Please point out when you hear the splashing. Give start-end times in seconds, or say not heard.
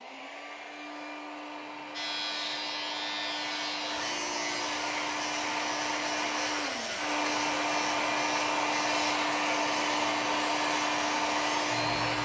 not heard.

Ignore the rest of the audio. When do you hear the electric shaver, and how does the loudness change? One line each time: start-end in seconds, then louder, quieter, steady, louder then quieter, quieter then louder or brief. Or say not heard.
1.9-12.2 steady.